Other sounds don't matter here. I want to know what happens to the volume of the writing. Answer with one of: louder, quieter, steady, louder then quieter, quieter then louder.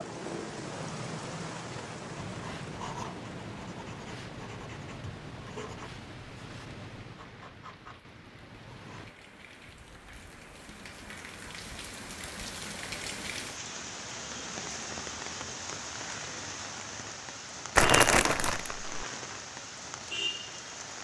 quieter.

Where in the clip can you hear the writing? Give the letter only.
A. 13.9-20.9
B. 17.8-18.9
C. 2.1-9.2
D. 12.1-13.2
C.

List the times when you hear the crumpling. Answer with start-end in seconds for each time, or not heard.
17.8-18.9.